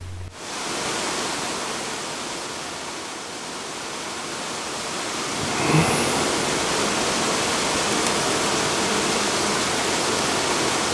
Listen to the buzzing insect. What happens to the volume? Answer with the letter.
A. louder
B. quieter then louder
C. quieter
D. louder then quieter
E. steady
C.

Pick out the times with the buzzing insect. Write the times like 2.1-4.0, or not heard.
5.2-10.8.